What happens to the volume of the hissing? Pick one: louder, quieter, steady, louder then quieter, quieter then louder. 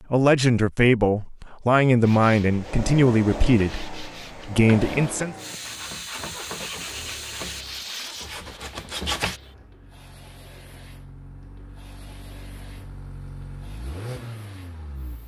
quieter.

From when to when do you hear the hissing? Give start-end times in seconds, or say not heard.
5.3-15.2.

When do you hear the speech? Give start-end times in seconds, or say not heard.
0.1-5.3.